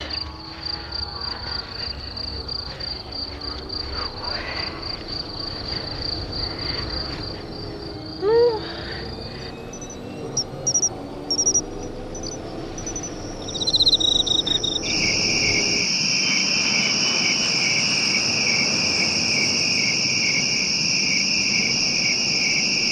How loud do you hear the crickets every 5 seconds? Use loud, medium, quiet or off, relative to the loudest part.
medium, medium, loud, loud, loud.